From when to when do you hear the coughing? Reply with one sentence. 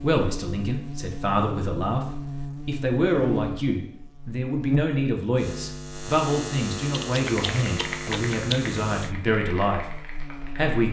The coughing can't be heard in this clip.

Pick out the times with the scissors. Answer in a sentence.
The scissors can be heard from 6.9 to 8.6 s.